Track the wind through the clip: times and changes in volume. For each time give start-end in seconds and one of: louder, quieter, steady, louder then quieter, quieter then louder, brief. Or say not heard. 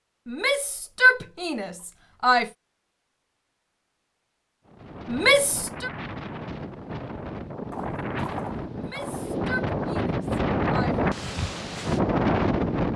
4.7-12.9 louder.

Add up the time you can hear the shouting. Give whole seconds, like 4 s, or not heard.
5 s.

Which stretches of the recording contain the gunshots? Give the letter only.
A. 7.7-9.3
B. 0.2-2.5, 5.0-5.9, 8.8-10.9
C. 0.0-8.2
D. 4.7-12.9
A.